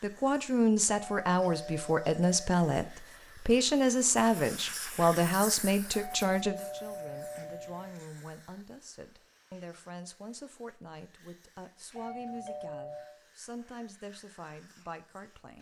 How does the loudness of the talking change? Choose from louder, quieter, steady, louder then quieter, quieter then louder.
quieter.